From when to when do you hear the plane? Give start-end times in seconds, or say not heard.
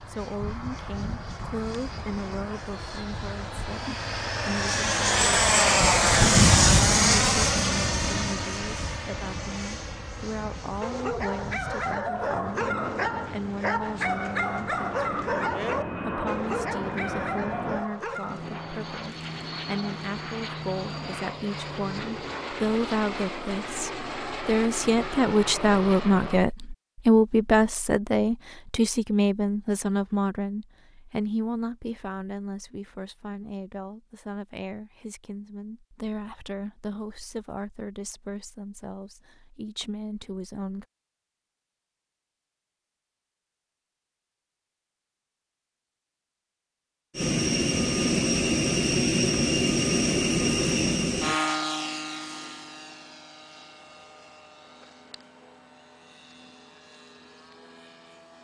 0.0-26.4, 47.1-58.3.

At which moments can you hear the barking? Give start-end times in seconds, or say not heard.
10.8-18.4.